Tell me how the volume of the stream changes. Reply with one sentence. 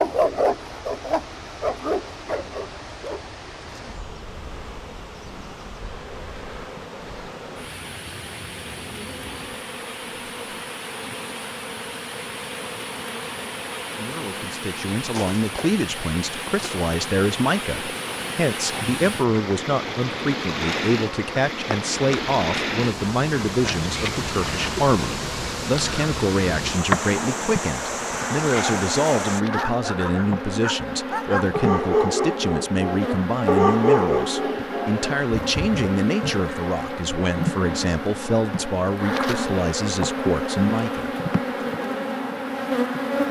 The volume of the stream goes up.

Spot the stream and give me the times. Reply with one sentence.
The stream can be heard from 0.0 to 29.4 s.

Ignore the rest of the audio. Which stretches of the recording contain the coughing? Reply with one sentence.
The coughing can't be heard in this clip.